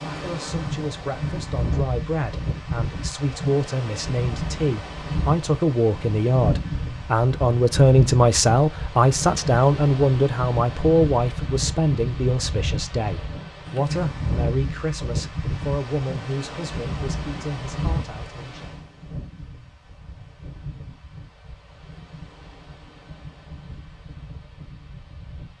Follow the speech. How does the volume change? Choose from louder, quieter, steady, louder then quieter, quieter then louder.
louder then quieter.